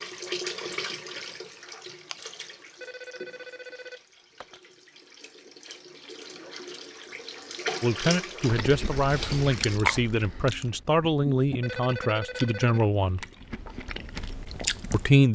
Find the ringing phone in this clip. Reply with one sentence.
The ringing phone can be heard from 2.8 to 4.6 s and from 11.6 to 12.8 s.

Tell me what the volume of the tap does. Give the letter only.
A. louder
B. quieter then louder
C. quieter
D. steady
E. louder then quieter
B.